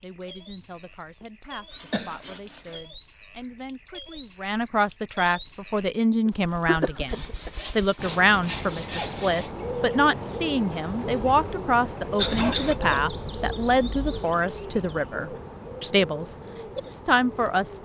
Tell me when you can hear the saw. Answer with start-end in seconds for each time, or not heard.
1.2-2.8, 7.0-9.5, 12.2-14.2.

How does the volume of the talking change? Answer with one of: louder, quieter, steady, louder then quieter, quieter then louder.
louder.